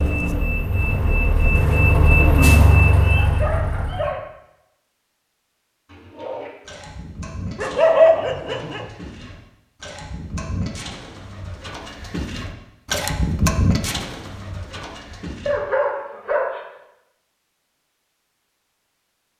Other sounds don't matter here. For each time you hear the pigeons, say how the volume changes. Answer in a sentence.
The pigeons can be heard from 5.8 to 15.6 s, getting quieter then louder.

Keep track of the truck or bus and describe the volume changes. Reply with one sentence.
The volume of the truck or bus goes up, then down.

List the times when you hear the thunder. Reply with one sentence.
The thunder can't be heard in this clip.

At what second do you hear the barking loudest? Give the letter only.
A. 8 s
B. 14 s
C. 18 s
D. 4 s
A.